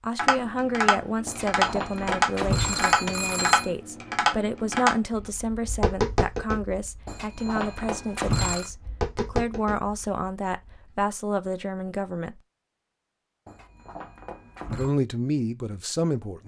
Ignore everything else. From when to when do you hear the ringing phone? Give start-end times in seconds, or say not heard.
1.2-3.7, 7.0-8.7, 13.4-14.9.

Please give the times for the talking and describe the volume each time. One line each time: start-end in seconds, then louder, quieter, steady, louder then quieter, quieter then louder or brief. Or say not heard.
0.0-12.4 steady
14.7-16.4 brief.